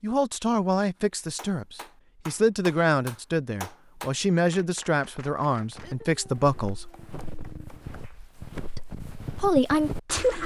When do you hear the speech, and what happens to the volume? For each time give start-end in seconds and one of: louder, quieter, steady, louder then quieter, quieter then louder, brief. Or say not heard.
0.0-6.9 steady
8.8-10.4 brief.